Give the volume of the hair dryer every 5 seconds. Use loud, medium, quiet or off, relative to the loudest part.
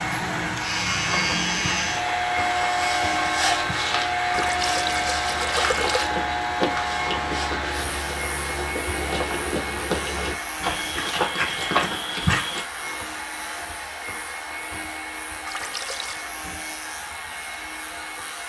loud, loud, medium, medium.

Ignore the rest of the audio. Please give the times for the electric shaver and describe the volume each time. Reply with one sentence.
The electric shaver can be heard from 0.0 to 18.4 s, getting quieter.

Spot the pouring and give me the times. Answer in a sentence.
The pouring can be heard from 4.3 to 6.1 s and from 15.4 to 16.2 s.